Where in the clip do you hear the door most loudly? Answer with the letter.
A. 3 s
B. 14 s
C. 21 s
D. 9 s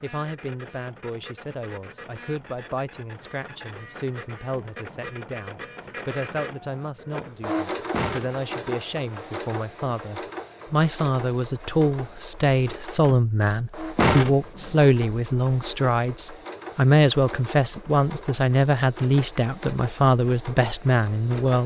B.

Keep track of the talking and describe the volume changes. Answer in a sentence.
The loudness of the talking goes up.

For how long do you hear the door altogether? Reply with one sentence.
You can hear the door for 2 seconds altogether.